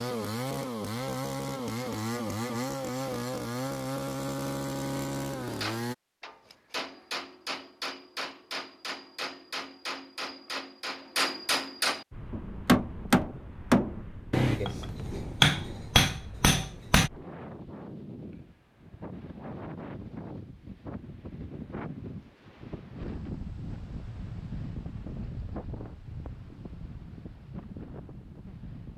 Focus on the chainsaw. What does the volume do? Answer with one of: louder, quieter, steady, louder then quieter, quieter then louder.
steady.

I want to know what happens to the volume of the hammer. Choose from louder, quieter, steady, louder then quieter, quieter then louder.
louder.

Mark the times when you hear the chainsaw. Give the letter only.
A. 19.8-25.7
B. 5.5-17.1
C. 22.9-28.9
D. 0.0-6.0
D.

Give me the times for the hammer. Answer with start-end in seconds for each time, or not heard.
5.5-17.1.